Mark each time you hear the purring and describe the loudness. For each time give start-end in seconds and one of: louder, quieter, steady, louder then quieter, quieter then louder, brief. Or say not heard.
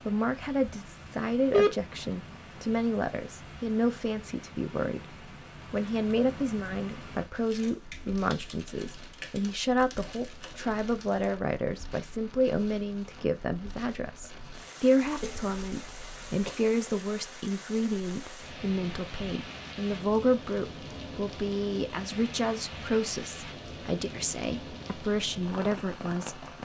not heard.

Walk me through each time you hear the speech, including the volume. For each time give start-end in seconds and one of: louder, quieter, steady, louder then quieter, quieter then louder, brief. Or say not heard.
0.1-26.4 steady.